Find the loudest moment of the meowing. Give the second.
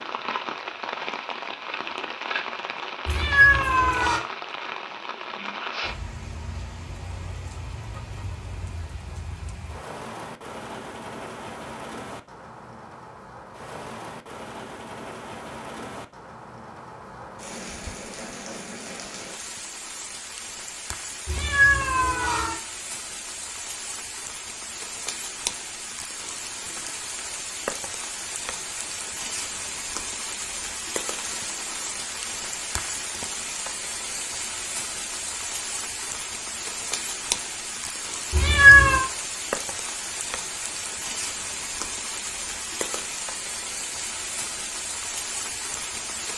39 s.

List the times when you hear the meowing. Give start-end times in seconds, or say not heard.
3.0-4.2, 21.2-22.6, 38.3-39.0.